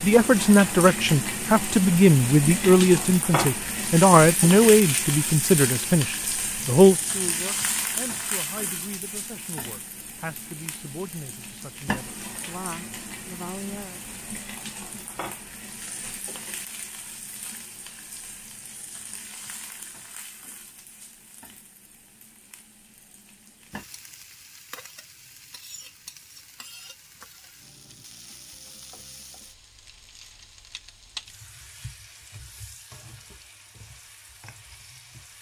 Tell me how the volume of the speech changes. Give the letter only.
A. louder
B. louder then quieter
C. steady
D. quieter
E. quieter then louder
D.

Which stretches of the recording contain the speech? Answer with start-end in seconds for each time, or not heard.
0.0-14.0.